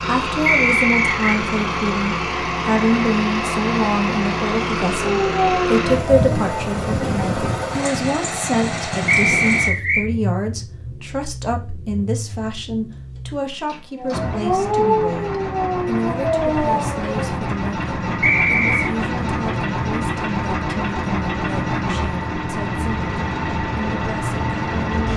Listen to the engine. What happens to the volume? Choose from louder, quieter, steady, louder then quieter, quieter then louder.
quieter then louder.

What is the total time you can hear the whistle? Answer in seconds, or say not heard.
3 s.